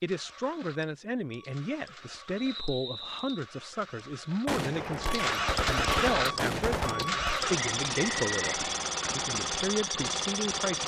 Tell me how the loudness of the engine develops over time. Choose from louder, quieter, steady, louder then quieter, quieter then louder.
louder.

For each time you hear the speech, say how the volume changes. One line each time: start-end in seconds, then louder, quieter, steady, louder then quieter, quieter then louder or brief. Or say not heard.
0.0-10.8 steady.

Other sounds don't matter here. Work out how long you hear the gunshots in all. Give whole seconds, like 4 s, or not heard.
3 s.